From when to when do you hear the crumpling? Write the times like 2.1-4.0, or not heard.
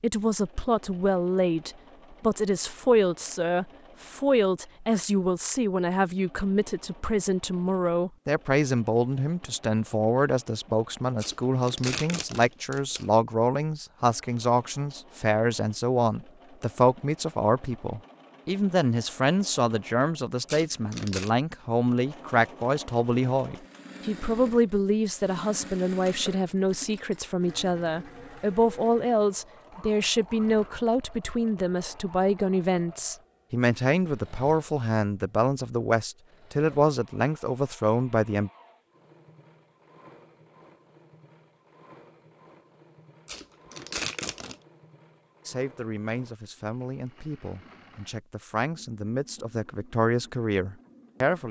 11.2-13.1, 20.4-21.3, 43.2-44.5.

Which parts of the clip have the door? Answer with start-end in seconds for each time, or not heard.
not heard.